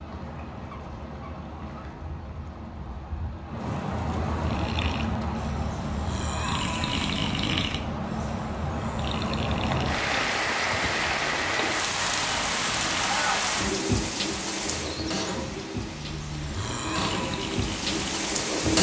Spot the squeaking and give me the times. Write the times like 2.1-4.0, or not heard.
0.5-1.9, 14.7-15.7.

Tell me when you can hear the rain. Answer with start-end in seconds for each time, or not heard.
0.0-18.7.